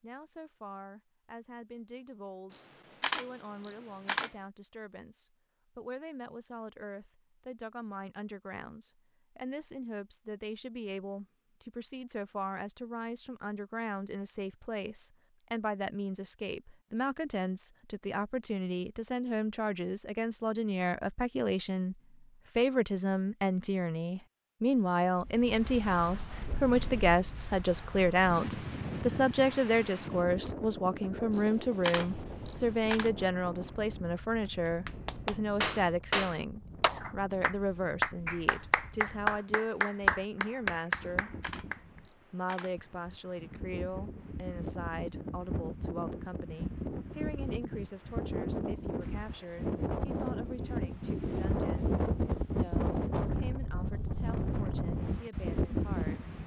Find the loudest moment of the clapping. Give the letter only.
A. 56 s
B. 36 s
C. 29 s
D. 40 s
D.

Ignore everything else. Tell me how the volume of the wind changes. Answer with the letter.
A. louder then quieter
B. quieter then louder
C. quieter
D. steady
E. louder
B.